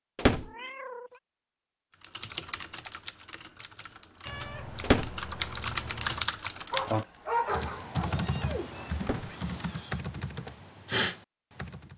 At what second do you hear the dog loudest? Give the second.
7 s.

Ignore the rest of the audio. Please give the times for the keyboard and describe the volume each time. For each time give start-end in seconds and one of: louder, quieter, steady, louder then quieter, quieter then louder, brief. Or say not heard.
2.0-11.9 louder.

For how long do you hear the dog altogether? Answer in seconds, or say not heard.
2 s.